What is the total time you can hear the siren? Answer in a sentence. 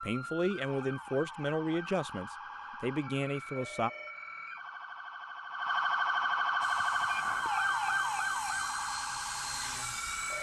The siren can be heard for 10 seconds in total.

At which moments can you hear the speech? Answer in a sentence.
The speech can be heard from 0.0 to 3.9 s.